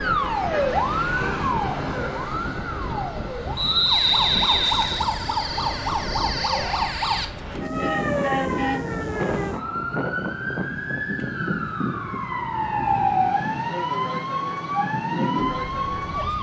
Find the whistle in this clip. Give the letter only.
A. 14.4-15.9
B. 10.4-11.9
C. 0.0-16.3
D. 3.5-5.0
D.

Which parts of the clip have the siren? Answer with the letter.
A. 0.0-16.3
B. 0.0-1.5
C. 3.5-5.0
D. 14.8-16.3
A.